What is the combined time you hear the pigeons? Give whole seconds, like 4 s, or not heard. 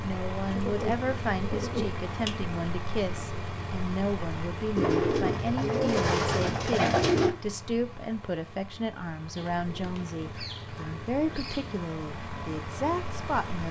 7 s.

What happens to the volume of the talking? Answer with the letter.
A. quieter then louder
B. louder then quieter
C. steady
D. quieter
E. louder
C.